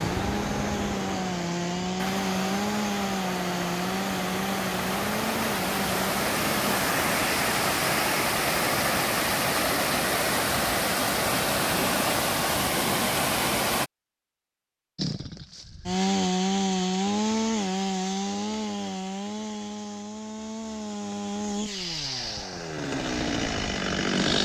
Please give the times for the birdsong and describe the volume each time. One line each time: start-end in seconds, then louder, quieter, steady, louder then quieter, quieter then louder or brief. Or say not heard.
not heard.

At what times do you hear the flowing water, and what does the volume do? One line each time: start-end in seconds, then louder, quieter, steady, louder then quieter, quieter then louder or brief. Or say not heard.
0.0-13.9 louder.